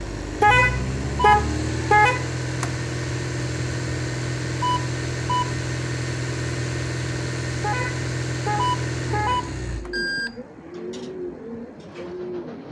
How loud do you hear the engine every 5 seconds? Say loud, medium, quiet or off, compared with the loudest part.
loud, loud, quiet.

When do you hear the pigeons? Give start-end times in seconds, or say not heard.
9.7-12.6.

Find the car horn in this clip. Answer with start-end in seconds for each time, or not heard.
0.4-2.7, 7.6-9.9.